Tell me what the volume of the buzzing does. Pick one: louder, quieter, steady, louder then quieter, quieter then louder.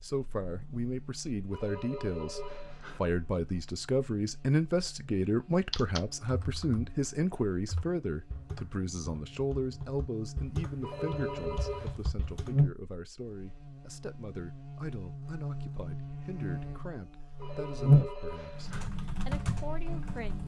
louder.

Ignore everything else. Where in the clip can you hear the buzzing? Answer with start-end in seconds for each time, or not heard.
0.1-20.4.